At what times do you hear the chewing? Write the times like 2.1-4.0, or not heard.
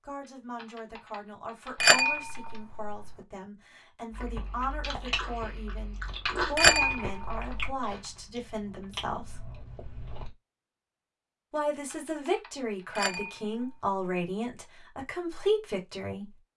4.1-10.3.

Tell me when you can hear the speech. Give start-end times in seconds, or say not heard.
0.1-9.4, 11.5-16.4.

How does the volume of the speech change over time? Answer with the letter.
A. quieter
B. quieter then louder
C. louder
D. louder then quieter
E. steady
C.